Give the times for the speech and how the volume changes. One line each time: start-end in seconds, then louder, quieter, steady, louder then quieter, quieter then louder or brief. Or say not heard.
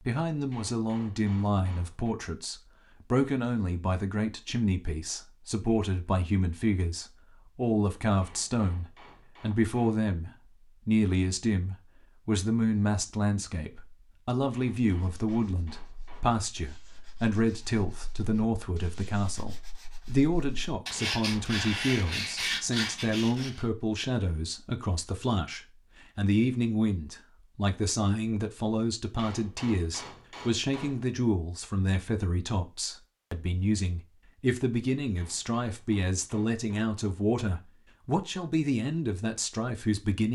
0.1-40.2 steady.